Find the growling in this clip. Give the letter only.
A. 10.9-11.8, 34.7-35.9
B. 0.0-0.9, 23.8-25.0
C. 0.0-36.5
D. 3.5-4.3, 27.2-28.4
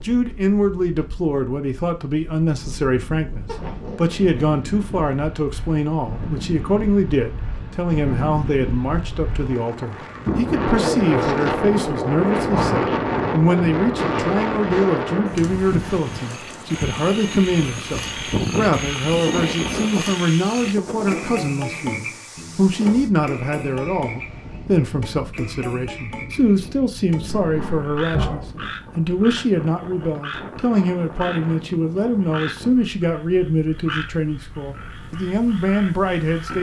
D.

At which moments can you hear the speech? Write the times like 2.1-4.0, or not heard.
0.0-36.5.